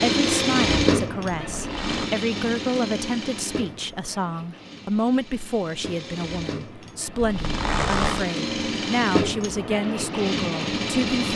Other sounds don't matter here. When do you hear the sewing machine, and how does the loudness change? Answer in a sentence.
You can hear the sewing machine from 0.0 to 11.3 s, getting quieter then louder.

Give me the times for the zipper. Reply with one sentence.
You can hear the zipper from 1.5 to 2.1 s and from 7.2 to 8.2 s.